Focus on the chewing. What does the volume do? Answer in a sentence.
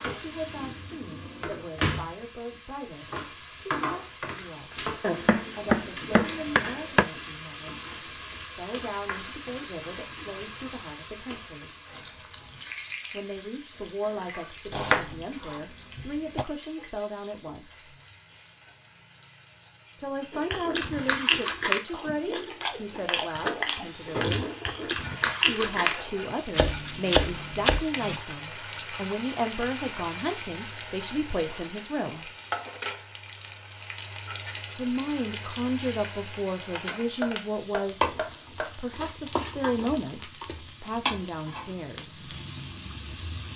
The loudness of the chewing stays about the same.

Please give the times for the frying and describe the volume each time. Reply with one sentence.
You can hear the frying from 0.0 to 43.5 s, getting quieter then louder.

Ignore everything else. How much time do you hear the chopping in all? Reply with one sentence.
You can hear the chopping for 7 seconds altogether.